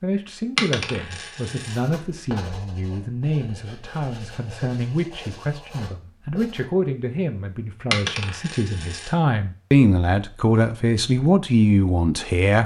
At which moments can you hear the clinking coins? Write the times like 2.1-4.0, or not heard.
0.6-1.8, 7.9-9.2.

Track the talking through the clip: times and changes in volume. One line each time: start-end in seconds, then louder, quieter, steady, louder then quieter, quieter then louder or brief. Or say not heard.
0.0-12.6 louder.